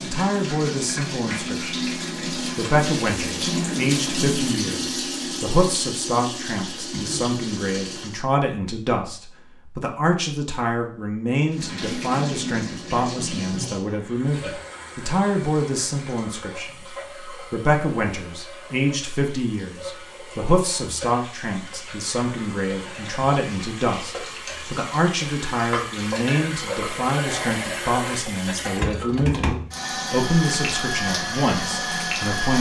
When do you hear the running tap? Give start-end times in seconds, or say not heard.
0.0-8.2, 11.5-32.5.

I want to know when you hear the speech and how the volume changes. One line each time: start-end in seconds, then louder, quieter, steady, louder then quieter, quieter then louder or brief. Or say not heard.
0.0-32.5 steady.